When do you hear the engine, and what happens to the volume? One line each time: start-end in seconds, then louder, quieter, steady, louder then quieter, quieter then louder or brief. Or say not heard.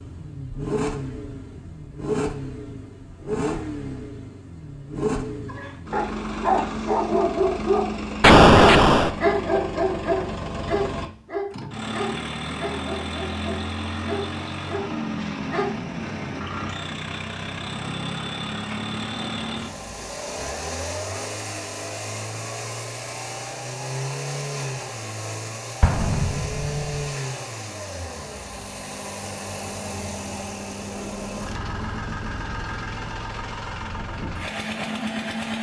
0.0-35.5 steady.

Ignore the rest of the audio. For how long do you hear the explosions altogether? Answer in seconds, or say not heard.
2 s.